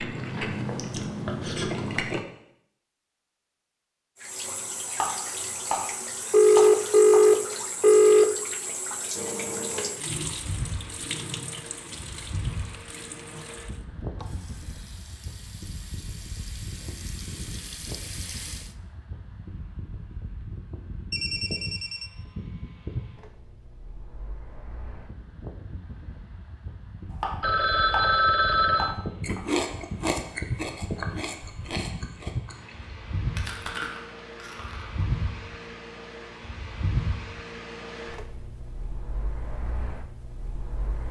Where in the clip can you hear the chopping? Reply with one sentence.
The chopping can be heard from 4.8 to 5.8 s, from 6.5 to 7.2 s, from 27.1 to 28.1 s and from 28.7 to 29.4 s.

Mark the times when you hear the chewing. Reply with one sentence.
You can hear the chewing from 0.0 to 2.2 s, from 29.2 to 32.8 s and from 33.4 to 35.0 s.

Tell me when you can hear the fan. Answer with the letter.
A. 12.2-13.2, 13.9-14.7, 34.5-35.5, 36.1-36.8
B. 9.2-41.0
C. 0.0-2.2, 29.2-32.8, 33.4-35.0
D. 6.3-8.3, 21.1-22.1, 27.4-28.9
B.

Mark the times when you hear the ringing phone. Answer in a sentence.
You can hear the ringing phone from 6.3 to 8.3 s, from 21.1 to 22.1 s and from 27.4 to 28.9 s.